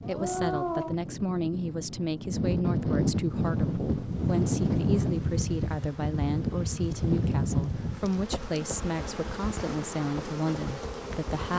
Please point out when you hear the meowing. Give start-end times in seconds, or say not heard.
0.0-0.9, 8.1-8.6.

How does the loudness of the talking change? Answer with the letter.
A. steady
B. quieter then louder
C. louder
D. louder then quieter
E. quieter
A.